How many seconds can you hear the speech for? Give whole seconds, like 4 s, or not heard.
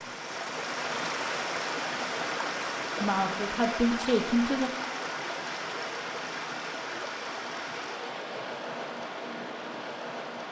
2 s.